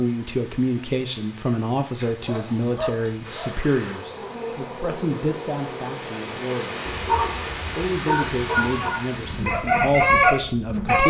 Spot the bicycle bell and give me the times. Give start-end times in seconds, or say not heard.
not heard.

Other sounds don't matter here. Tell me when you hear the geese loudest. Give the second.
10 s.